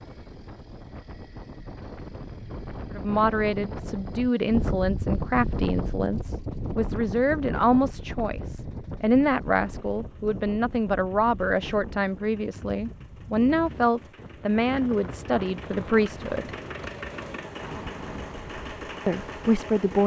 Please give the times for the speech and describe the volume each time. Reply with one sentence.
The speech can be heard from 3.0 to 16.5 s, at a steady volume; and briefly from 19.1 to 20.0 s.